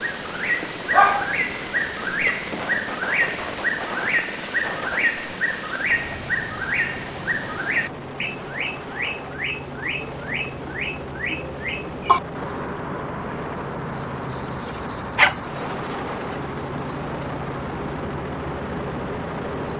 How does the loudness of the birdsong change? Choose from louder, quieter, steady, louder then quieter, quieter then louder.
quieter.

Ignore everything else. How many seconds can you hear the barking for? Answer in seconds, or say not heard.
3 s.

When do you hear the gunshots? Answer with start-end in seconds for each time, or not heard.
2.4-5.2.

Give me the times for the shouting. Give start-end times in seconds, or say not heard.
not heard.